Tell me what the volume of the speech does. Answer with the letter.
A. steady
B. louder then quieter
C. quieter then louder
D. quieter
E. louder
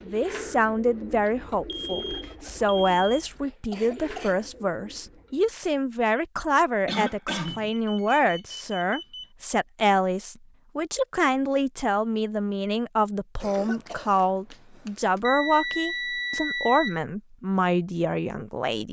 A.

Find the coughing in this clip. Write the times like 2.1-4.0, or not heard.
2.9-4.4, 6.8-7.7, 13.3-15.2.